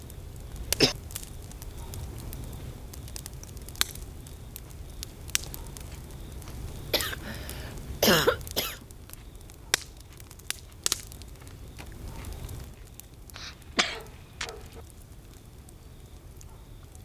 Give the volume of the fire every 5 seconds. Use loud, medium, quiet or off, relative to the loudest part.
loud, loud, loud, quiet.